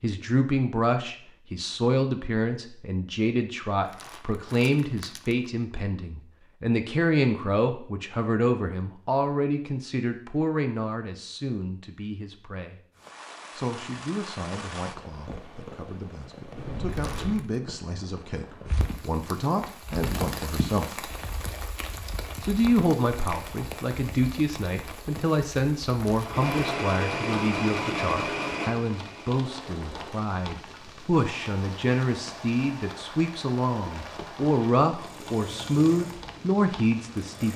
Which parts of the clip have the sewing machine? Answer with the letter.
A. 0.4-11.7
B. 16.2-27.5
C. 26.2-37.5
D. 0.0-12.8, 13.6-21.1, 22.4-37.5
C.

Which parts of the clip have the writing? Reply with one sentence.
The writing can't be heard in this clip.